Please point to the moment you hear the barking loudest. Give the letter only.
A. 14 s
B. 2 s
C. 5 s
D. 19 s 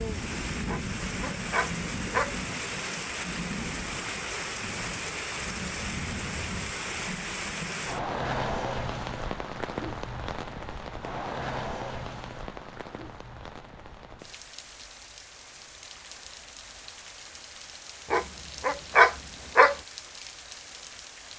D.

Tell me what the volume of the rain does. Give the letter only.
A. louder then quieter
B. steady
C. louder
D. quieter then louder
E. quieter
E.